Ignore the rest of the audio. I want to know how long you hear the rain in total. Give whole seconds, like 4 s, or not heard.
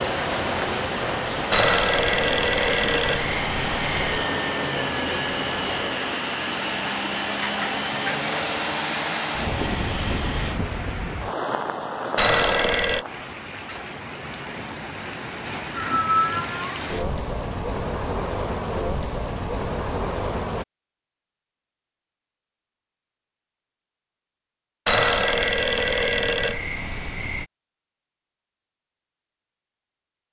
21 s.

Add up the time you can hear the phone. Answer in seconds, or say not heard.
6 s.